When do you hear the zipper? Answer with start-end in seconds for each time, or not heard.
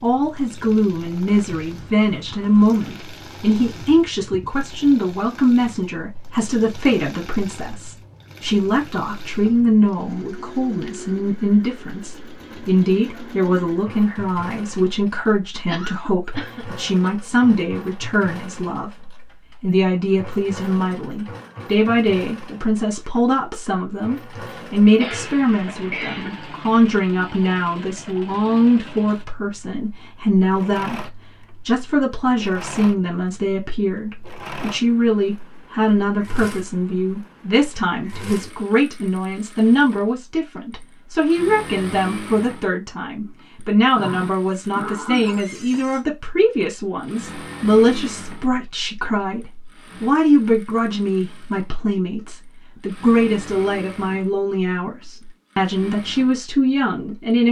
not heard.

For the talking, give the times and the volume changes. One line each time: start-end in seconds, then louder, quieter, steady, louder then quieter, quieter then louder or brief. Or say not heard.
0.0-57.4 steady.